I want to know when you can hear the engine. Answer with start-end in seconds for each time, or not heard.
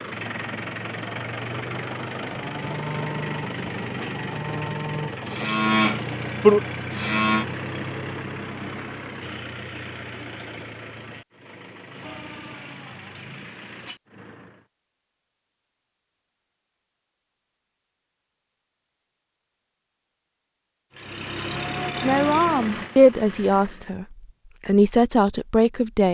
0.0-14.7, 20.9-23.9.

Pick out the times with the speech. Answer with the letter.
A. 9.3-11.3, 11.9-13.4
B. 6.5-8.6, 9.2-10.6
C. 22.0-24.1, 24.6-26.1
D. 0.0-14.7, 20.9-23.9
C.